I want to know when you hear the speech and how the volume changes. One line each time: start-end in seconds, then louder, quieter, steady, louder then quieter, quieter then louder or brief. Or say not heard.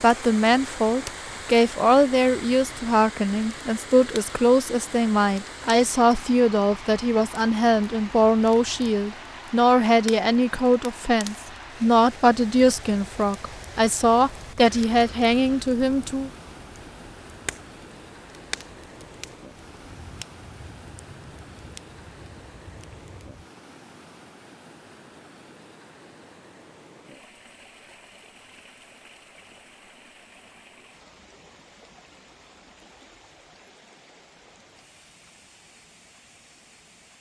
0.0-16.3 steady.